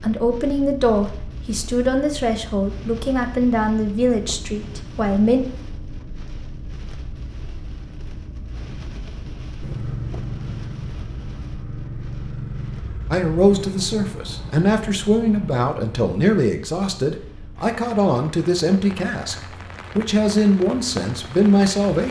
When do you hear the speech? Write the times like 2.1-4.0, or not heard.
0.0-5.4, 13.1-22.0.